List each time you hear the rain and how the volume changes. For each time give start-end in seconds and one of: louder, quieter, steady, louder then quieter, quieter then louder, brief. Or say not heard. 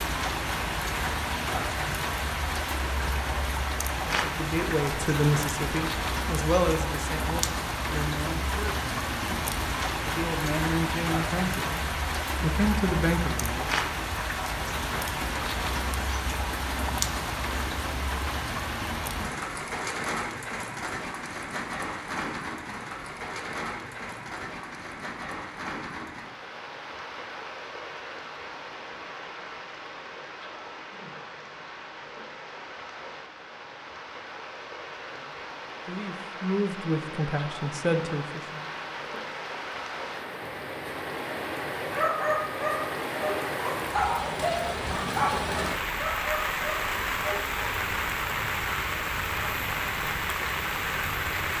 0.0-51.5 quieter then louder.